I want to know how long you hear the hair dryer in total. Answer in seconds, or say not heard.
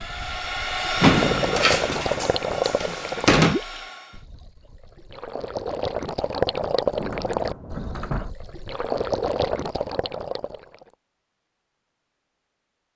4 s.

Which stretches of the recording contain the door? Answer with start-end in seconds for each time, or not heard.
1.0-3.5, 7.0-8.3.